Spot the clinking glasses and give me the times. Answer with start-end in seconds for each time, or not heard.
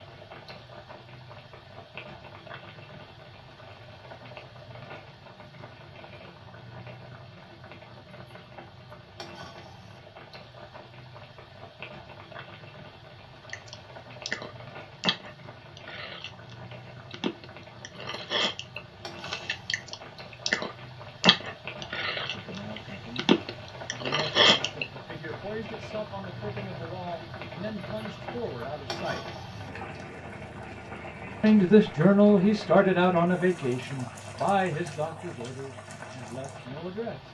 not heard.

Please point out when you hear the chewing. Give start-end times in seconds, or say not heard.
13.4-24.9.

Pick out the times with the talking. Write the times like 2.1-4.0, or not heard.
22.3-23.4, 24.0-29.2, 31.4-37.2.